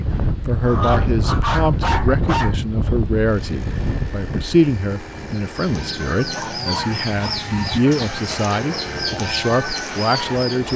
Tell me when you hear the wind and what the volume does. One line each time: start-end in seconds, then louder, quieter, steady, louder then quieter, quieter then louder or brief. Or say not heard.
0.0-10.7 quieter.